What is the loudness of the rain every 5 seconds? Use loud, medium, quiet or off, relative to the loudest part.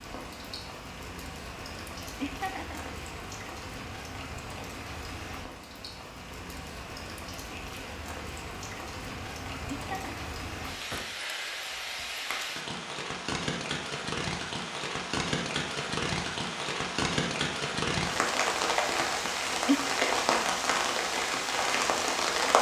quiet, quiet, medium, loud, loud.